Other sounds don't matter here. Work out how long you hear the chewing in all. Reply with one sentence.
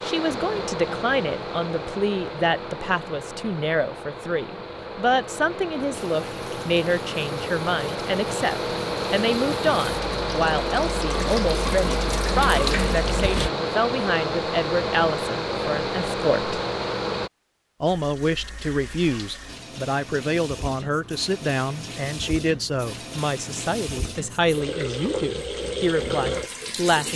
You can't hear the chewing here.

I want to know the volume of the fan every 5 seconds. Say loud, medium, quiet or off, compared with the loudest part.
medium, loud, loud, loud, off, off.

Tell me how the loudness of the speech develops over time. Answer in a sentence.
The volume of the speech stays about the same.